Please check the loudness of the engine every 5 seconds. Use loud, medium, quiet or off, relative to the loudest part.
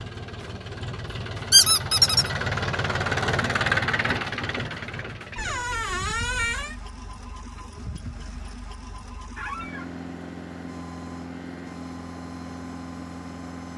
loud, quiet, medium.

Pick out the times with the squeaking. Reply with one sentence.
The squeaking can be heard from 1.5 to 2.3 s, from 5.3 to 6.8 s and from 9.3 to 9.9 s.